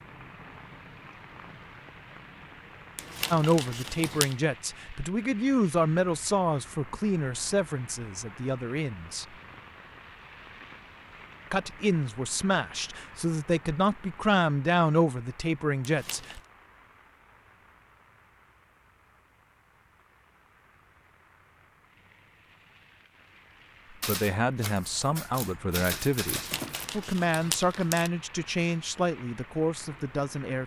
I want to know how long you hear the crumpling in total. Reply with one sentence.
You can hear the crumpling for 4 seconds altogether.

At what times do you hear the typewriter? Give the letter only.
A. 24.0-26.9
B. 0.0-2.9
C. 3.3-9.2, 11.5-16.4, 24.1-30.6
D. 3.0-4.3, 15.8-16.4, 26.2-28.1
A.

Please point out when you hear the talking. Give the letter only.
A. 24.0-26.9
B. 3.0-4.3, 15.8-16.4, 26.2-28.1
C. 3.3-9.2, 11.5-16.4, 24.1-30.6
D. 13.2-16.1
C.